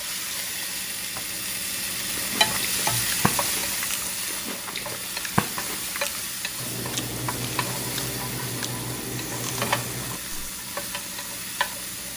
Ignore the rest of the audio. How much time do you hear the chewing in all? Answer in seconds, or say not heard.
8 s.